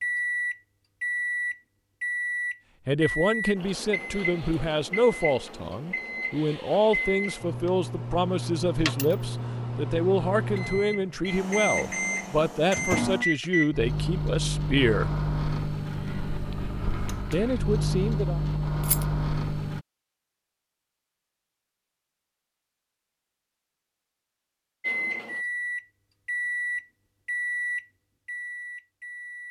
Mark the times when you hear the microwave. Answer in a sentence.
You can hear the microwave from 0.0 to 19.9 s and from 24.8 to 29.4 s.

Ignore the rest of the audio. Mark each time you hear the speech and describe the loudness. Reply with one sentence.
The speech can be heard from 2.9 to 15.1 s, at a steady volume; and briefly from 17.3 to 18.4 s.